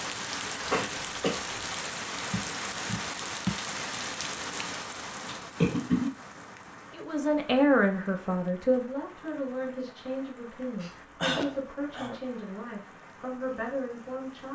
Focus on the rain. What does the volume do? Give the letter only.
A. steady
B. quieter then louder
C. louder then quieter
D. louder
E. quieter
E.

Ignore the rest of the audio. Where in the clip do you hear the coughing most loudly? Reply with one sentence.
The loudest moment of the coughing is at 6 seconds.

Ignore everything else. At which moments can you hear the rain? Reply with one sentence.
You can hear the rain from 0.0 to 14.5 s.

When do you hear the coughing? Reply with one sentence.
You can hear the coughing from 0.6 to 1.4 s, from 5.2 to 6.1 s and from 10.8 to 12.2 s.